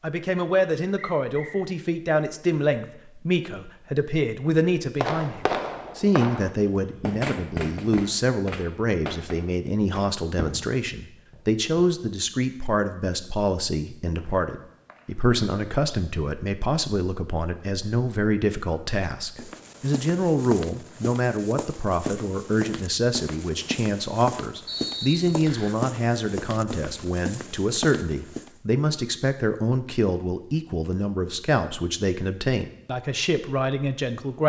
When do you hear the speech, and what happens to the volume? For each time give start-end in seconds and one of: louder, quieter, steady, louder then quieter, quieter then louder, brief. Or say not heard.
0.0-34.4 steady.